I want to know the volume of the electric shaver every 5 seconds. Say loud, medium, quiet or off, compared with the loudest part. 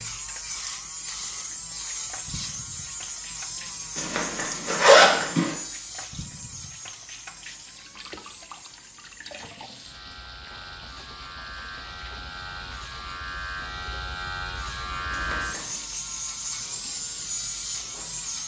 loud, medium, medium, loud.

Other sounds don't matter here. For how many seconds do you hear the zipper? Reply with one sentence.
You can hear the zipper for 2 seconds altogether.